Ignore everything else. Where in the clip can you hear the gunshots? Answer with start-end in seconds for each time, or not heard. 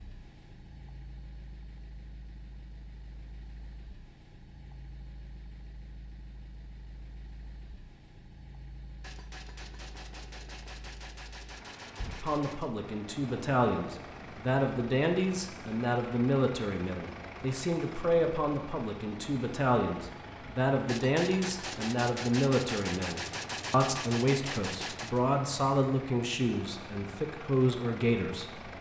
9.0-12.7, 20.9-25.2.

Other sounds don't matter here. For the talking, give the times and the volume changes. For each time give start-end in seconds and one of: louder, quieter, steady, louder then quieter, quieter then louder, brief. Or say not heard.
12.2-28.6 steady.